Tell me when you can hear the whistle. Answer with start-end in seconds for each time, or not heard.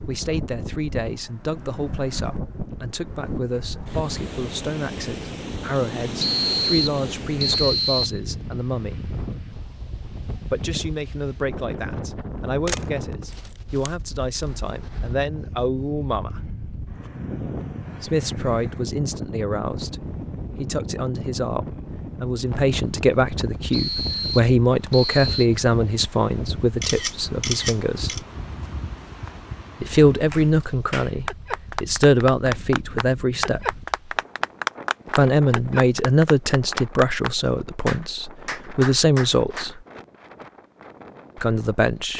6.2-8.2, 23.7-25.5.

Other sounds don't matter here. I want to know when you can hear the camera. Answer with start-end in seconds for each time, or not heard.
12.7-13.9, 26.8-28.2.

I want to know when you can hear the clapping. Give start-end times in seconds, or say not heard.
30.3-39.8.